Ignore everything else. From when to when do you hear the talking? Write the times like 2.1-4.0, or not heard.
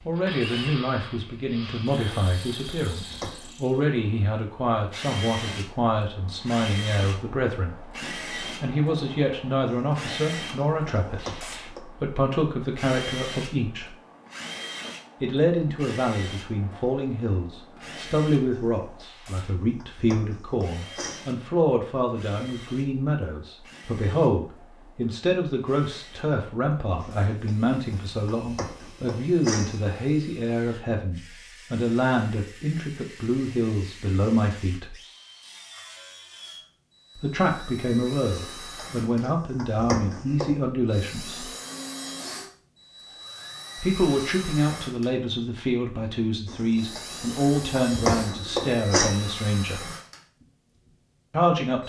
0.1-13.9, 15.2-35.0, 37.1-41.5, 43.8-49.9, 51.3-51.8.